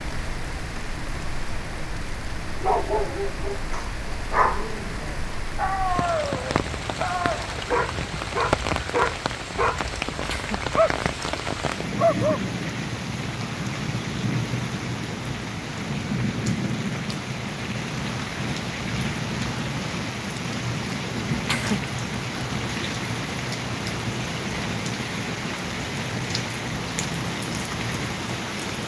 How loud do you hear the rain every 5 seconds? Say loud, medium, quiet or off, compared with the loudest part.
medium, loud, loud, loud, loud, loud.